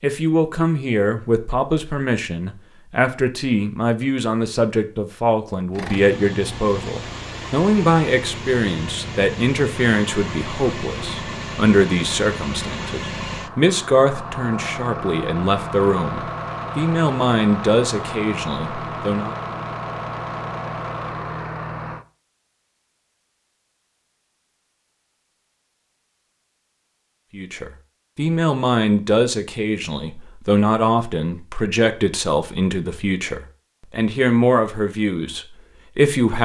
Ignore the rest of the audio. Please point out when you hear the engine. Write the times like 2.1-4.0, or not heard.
5.7-22.1.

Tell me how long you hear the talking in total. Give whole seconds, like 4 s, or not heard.
28 s.